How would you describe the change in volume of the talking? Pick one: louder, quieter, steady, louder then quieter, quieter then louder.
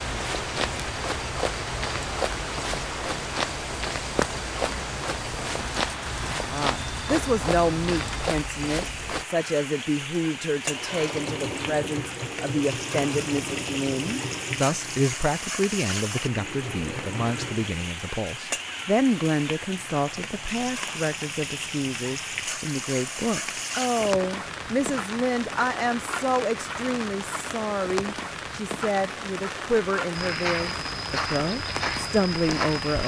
steady.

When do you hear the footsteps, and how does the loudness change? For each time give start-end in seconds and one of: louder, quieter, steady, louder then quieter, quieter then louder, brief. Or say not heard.
0.0-9.2 steady
30.1-33.0 brief.